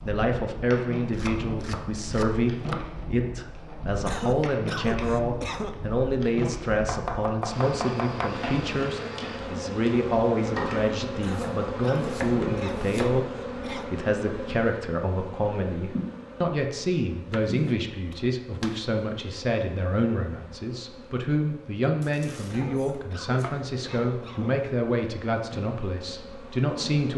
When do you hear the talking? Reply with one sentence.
The talking can be heard from 0.0 to 27.1 s.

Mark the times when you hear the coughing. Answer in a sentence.
You can hear the coughing from 4.0 to 5.8 s, from 11.2 to 13.9 s and from 22.4 to 24.6 s.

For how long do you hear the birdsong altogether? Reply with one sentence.
You can't hear the birdsong here.